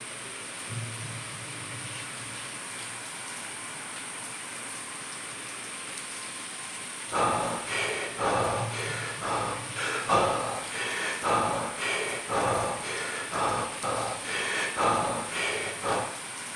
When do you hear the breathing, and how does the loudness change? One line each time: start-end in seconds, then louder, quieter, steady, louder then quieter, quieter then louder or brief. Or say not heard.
7.1-16.1 steady.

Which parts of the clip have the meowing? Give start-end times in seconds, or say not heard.
not heard.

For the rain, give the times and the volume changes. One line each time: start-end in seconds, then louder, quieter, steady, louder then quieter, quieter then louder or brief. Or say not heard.
0.0-16.5 steady.